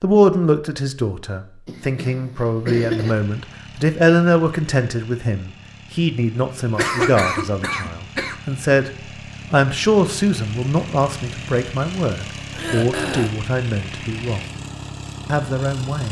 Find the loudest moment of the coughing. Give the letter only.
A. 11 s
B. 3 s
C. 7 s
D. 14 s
C.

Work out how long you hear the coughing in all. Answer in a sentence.
The coughing can be heard for 4 seconds in total.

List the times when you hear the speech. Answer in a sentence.
The speech can be heard from 0.0 to 8.9 s, from 9.5 to 14.4 s and from 15.2 to 16.0 s.